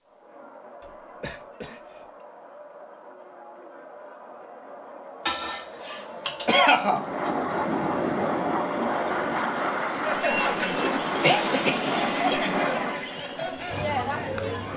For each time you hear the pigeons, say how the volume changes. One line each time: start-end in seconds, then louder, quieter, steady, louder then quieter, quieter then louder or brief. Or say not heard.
not heard.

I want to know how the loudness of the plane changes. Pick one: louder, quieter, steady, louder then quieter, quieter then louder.
steady.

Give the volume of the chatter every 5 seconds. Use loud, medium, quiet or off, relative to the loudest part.
quiet, medium, loud.